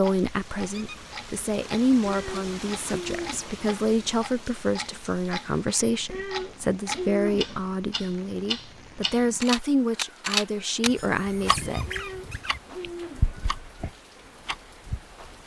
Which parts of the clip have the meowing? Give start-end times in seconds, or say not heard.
2.0-3.5, 6.0-7.7, 11.8-13.4.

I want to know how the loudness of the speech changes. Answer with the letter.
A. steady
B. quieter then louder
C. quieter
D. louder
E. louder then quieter
A.